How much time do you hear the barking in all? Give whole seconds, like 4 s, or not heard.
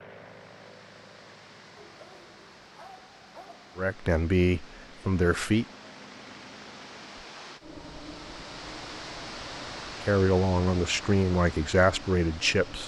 2 s.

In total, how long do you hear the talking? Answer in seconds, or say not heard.
5 s.